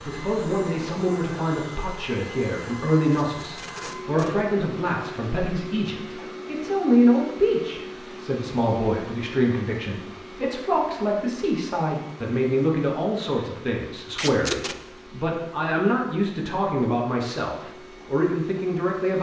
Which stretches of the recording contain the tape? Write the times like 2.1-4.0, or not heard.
3.1-4.4, 14.2-14.8.